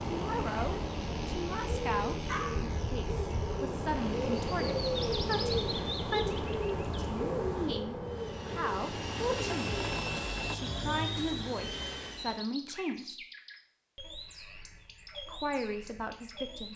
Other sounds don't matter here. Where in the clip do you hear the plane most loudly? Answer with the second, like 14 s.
10 s.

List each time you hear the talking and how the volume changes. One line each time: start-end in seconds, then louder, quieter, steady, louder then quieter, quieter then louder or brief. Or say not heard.
0.1-9.7 steady
10.5-13.2 brief
15.2-16.7 brief.